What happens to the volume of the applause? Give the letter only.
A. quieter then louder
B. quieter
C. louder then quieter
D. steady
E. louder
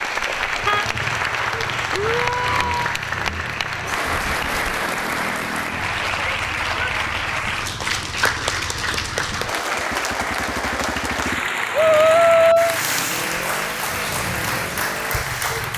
D.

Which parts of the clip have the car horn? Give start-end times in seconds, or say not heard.
0.2-0.8.